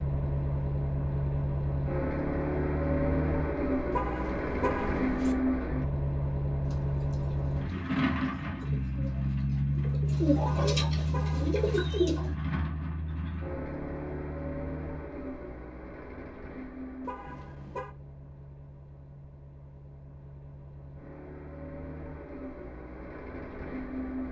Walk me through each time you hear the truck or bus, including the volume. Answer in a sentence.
You can hear the truck or bus from 0.0 to 24.2 s, getting quieter.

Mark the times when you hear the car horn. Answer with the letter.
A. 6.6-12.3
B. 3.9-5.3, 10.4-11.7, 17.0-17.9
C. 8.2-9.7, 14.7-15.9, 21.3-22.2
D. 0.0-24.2
B.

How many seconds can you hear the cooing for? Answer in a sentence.
You can hear the cooing for 6 seconds altogether.